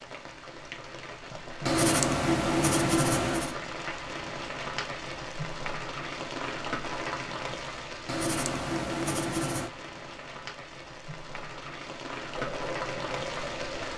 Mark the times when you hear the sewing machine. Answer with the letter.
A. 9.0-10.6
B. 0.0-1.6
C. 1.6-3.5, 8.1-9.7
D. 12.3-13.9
D.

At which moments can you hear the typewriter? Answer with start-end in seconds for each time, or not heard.
not heard.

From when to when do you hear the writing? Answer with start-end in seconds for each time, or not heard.
1.6-3.5, 8.1-9.7.